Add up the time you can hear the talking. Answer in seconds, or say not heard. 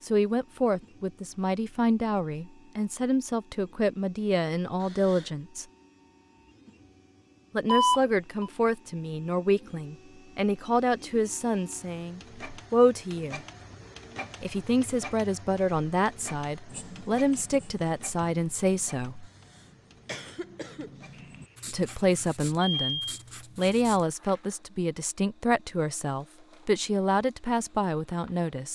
23 s.